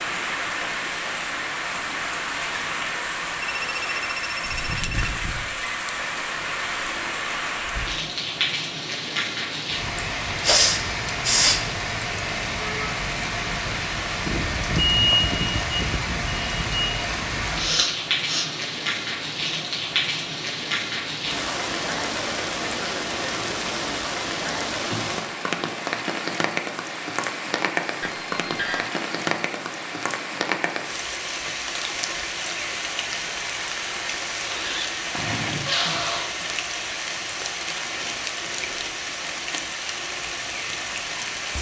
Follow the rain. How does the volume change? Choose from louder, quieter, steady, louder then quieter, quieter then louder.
steady.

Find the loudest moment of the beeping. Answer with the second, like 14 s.
15 s.